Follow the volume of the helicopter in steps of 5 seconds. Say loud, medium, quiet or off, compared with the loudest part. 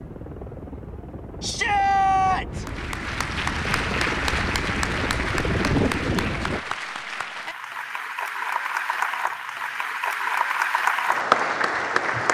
medium, loud, off.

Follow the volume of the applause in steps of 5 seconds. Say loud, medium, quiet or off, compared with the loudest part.
medium, medium, loud.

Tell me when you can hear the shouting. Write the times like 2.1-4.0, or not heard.
1.4-2.6.